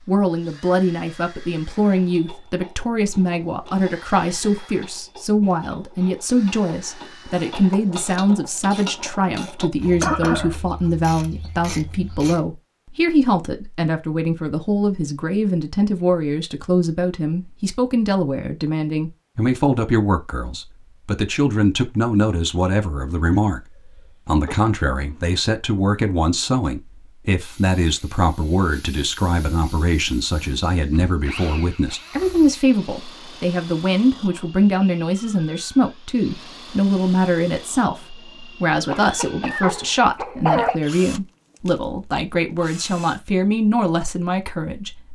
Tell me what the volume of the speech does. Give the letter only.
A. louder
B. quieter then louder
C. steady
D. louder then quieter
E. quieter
C.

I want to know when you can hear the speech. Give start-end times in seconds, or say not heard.
0.1-23.6, 24.2-45.1.